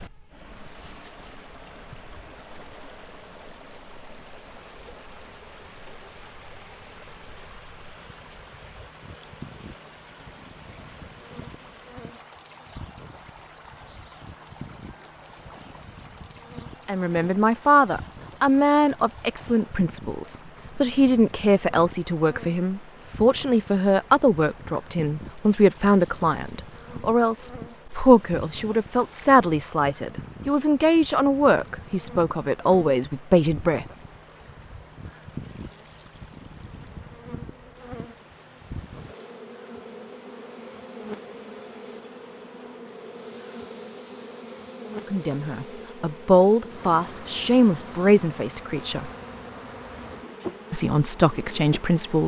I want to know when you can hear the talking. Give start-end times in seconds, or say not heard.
16.9-33.9, 45.1-49.1, 50.7-52.2.